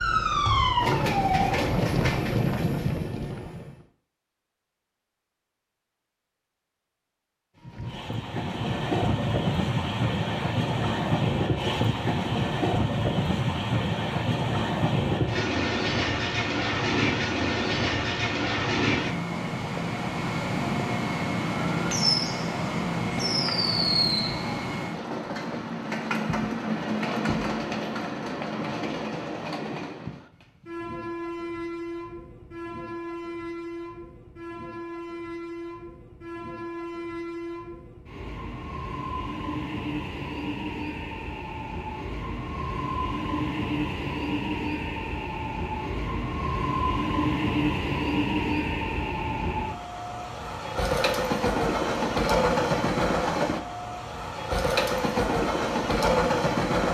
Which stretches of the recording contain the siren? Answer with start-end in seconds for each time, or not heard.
0.0-1.6.